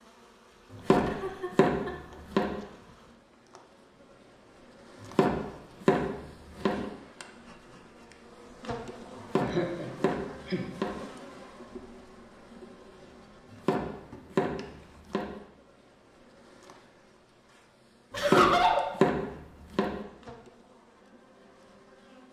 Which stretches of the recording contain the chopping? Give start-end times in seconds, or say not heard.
0.7-2.5, 5.0-6.8, 9.2-10.9, 13.5-15.3, 18.1-19.9.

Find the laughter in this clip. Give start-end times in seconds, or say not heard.
0.8-2.2, 9.4-10.6, 18.1-18.9.